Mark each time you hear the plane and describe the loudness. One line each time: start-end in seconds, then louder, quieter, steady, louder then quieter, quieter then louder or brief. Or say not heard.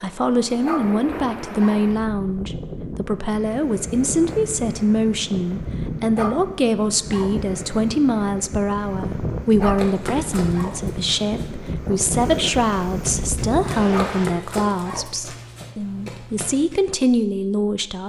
not heard.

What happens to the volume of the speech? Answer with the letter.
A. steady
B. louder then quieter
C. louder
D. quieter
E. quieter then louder
A.